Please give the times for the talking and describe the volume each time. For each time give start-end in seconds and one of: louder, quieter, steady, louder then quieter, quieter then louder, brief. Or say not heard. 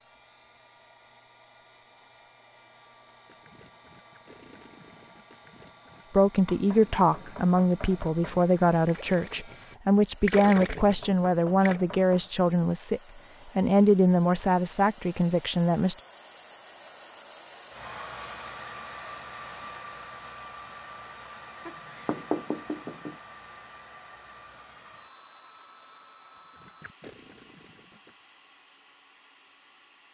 6.1-15.9 steady.